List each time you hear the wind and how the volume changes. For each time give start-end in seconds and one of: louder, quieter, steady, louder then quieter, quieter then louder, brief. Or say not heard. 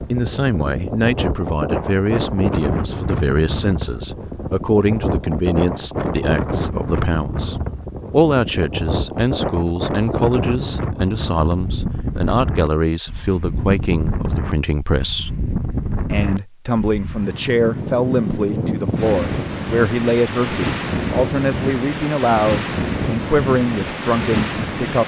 0.0-25.0 steady.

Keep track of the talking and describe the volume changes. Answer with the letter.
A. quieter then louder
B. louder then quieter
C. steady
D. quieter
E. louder
C.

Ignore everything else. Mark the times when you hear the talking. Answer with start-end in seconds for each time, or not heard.
0.0-25.0.